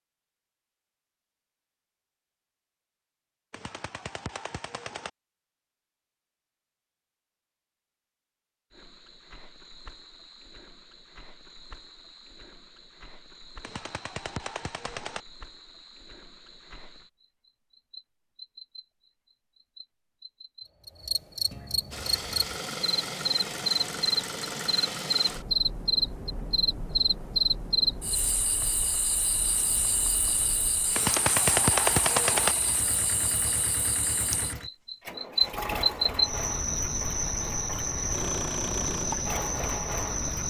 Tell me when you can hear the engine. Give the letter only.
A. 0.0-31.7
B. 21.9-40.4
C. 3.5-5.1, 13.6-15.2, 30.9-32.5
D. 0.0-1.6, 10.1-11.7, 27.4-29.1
B.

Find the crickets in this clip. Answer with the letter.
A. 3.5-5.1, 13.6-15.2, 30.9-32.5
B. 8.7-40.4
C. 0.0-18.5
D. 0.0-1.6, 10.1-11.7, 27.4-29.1
B.